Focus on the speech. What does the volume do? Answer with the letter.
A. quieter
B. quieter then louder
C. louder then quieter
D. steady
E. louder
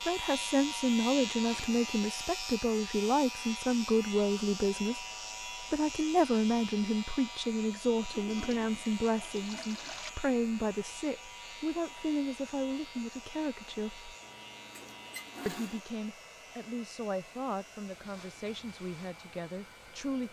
A.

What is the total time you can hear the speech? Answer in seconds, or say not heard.
19 s.